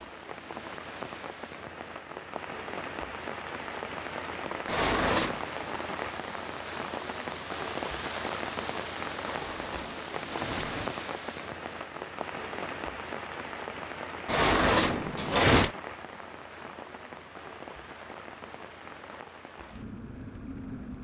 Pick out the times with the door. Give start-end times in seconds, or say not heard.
4.7-5.4, 9.2-10.9, 14.2-15.7.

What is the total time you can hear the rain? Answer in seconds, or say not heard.
21 s.